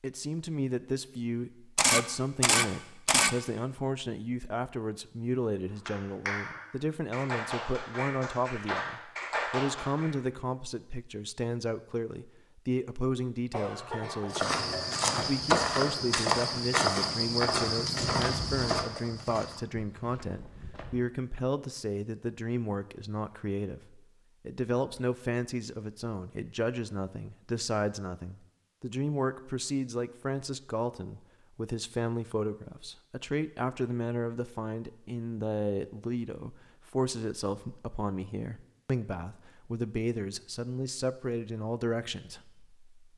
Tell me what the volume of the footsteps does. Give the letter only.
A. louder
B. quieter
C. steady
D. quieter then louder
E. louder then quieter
B.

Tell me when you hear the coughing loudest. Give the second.
14 s.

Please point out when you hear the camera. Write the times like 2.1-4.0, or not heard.
1.8-3.3.